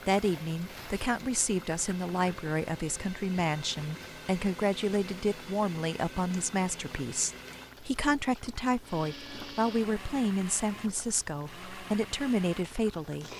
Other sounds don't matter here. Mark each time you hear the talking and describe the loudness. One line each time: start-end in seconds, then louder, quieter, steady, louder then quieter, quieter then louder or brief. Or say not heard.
0.1-13.3 steady.